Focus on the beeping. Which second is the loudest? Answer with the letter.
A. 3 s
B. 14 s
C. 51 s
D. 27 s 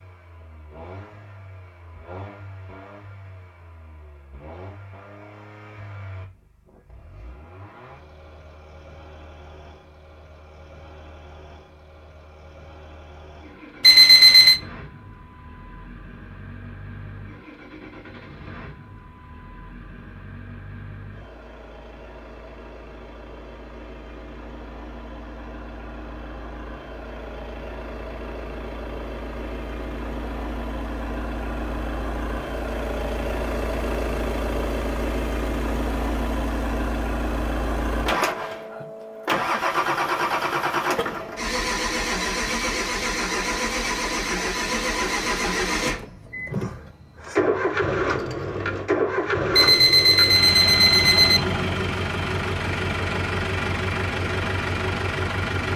B.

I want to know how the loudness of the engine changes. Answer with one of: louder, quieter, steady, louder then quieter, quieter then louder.
louder.